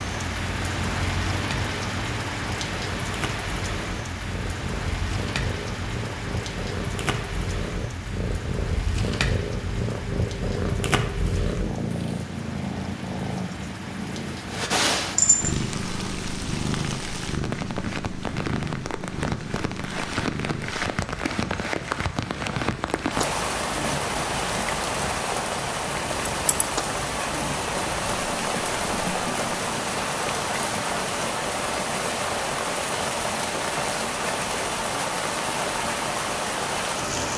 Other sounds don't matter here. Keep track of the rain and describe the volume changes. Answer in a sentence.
The volume of the rain goes down, then up.